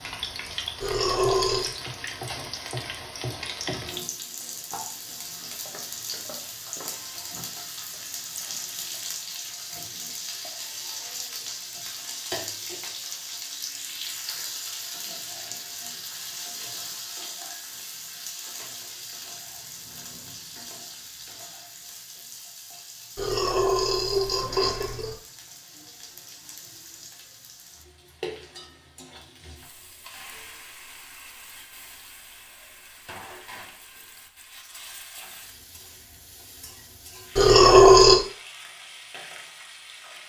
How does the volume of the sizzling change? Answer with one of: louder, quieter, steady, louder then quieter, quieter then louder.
quieter.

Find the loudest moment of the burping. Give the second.
38 s.